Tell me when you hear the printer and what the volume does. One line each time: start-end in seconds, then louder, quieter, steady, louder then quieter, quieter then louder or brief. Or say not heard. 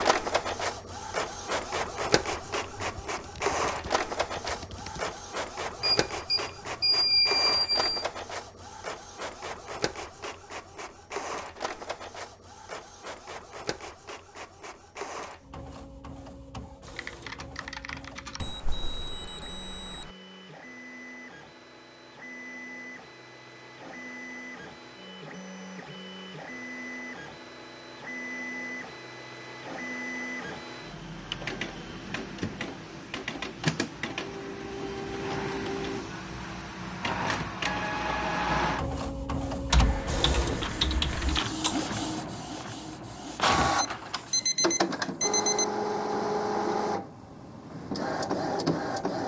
0.0-49.2 quieter then louder.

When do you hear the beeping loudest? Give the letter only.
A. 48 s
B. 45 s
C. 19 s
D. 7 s
D.